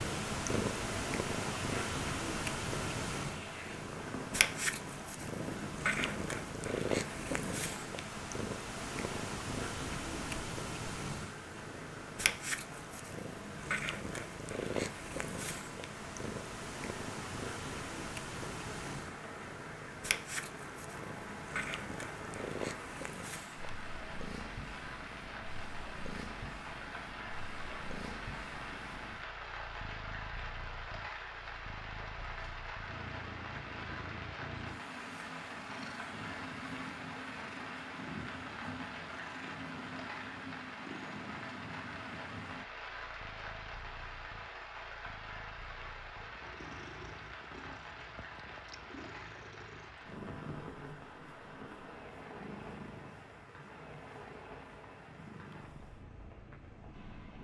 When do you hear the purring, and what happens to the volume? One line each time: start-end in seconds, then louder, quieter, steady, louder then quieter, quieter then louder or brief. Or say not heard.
0.0-57.3 quieter.